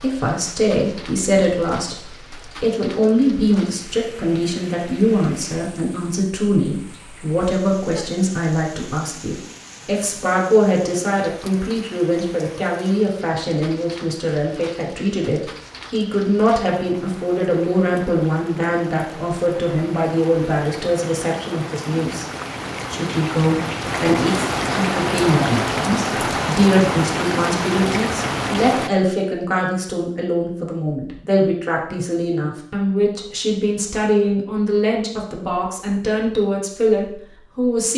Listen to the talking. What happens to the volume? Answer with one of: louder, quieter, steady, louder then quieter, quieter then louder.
steady.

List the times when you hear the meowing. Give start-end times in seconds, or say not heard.
not heard.